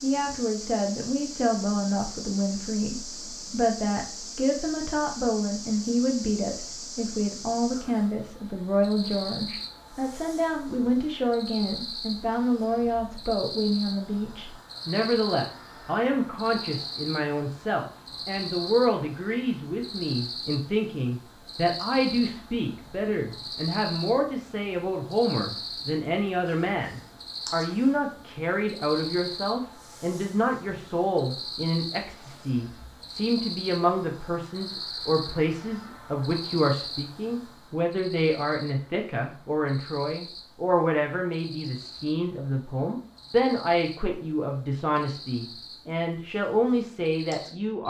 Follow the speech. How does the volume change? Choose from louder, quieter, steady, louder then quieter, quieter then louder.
steady.